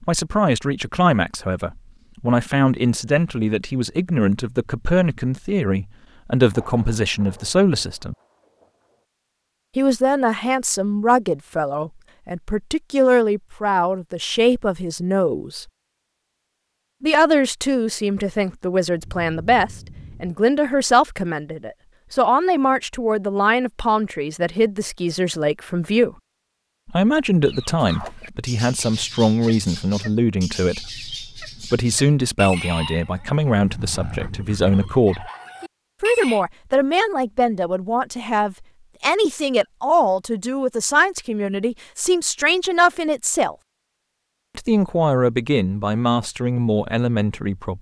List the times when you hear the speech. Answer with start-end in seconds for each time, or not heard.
0.0-8.2, 9.8-15.7, 17.0-26.1, 26.9-35.3, 36.0-43.5, 44.5-47.7.